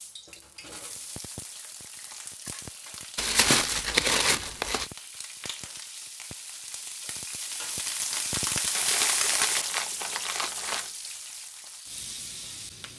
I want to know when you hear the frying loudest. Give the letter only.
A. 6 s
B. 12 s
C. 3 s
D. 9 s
D.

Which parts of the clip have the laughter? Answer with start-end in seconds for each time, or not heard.
not heard.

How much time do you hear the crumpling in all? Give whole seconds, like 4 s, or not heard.
4 s.